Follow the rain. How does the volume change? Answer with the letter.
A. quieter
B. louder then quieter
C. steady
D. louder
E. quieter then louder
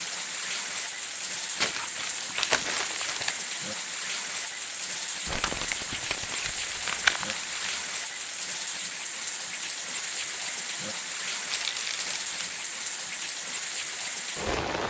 C.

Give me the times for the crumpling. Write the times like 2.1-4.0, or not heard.
1.6-3.4, 5.2-7.8, 11.4-12.7.